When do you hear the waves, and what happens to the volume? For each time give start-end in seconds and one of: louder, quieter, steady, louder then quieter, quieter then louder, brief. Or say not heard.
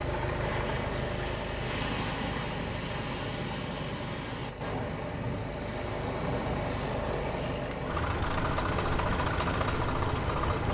0.0-10.6 steady.